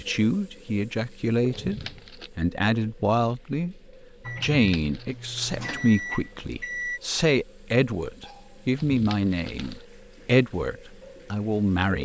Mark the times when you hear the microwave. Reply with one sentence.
You can hear the microwave from 4.2 to 7.0 s.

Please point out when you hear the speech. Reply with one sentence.
You can hear the speech from 0.0 to 3.8 s and from 4.4 to 12.0 s.